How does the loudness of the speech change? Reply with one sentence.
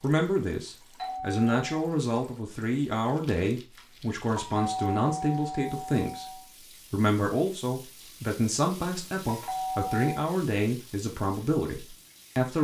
The loudness of the speech stays about the same.